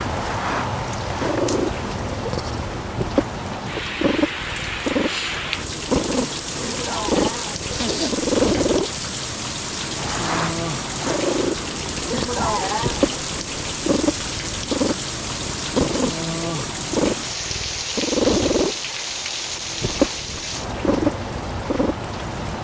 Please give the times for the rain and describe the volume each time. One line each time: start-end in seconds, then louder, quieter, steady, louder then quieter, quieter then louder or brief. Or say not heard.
0.0-22.5 steady.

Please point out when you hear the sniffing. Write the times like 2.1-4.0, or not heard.
6.6-8.2, 12.1-13.1.